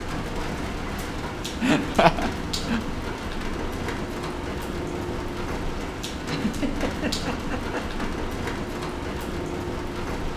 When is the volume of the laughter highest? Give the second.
2 s.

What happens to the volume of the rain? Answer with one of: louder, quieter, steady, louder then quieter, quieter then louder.
steady.